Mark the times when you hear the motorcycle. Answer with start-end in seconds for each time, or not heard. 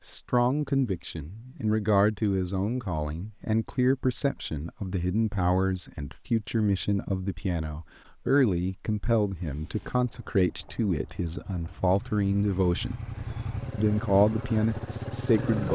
9.3-15.7.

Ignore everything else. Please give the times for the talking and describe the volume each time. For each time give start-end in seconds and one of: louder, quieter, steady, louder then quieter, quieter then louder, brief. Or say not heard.
0.1-12.9 steady
13.8-15.7 brief.